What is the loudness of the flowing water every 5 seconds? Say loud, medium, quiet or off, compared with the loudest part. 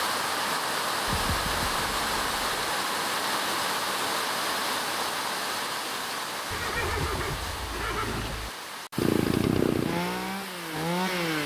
loud, medium, medium.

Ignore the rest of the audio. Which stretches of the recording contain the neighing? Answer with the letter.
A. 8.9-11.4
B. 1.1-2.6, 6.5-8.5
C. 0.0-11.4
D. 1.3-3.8
B.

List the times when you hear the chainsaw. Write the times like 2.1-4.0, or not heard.
8.9-11.4.